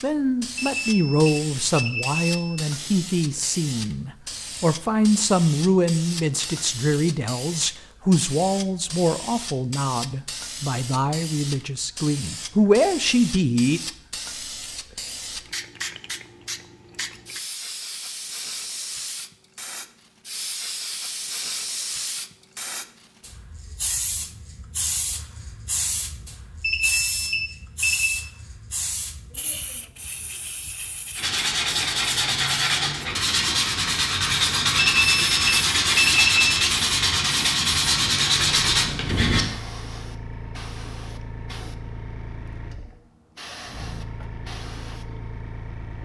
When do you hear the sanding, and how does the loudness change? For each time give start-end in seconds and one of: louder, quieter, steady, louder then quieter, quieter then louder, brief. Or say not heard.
31.1-39.5 steady.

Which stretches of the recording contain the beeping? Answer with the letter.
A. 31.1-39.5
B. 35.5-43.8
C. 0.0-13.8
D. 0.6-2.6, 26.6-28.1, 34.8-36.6
D.